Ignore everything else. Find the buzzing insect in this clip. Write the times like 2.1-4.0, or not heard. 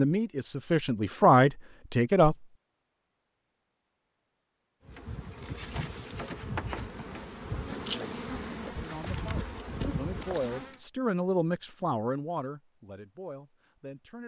4.8-10.8.